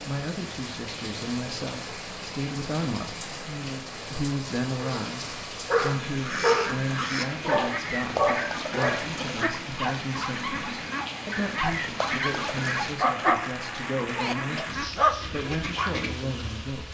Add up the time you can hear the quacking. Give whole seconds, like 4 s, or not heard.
10 s.